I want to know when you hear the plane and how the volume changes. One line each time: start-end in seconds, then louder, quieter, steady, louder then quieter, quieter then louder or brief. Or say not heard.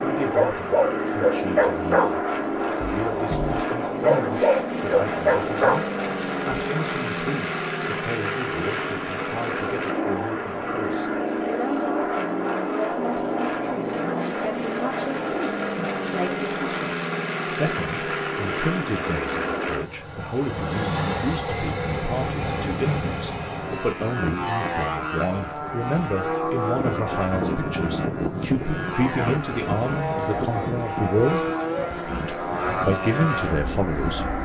0.0-34.4 steady.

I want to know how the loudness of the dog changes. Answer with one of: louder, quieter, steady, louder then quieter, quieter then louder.
quieter then louder.